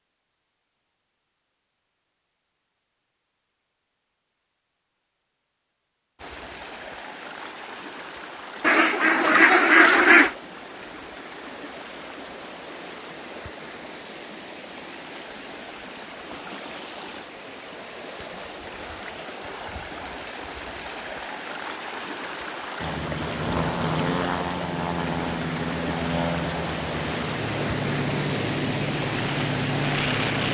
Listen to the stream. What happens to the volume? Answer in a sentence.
The loudness of the stream goes up.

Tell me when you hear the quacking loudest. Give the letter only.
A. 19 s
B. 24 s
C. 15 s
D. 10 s
D.